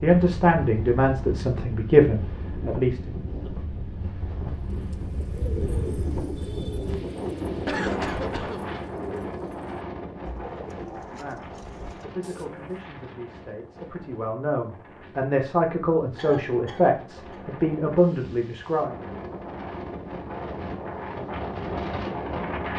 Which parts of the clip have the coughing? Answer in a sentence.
The coughing can be heard from 7.7 to 8.7 s and from 16.1 to 17.4 s.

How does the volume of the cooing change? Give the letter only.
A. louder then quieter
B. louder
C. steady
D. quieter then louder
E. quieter
E.